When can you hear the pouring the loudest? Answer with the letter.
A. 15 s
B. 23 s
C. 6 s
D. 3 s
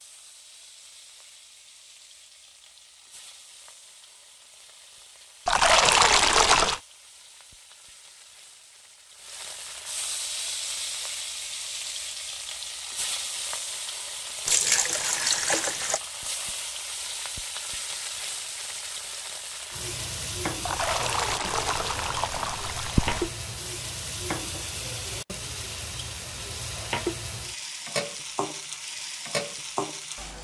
C.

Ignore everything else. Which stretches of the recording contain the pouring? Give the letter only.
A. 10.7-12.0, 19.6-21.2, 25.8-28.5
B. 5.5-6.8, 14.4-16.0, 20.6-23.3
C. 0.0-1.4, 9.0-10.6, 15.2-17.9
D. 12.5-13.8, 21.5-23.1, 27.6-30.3
B.